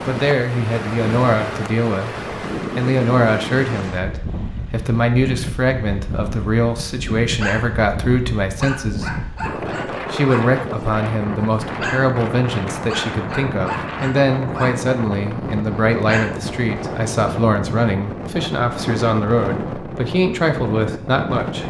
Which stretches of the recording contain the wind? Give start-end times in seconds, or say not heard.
0.0-21.6.